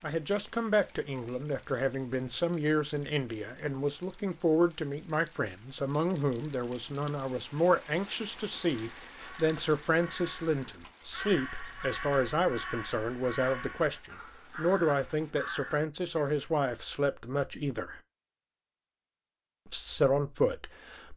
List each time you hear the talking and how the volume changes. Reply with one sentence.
The talking can be heard from 0.0 to 18.0 s, at a steady volume; and briefly from 19.6 to 21.1 s.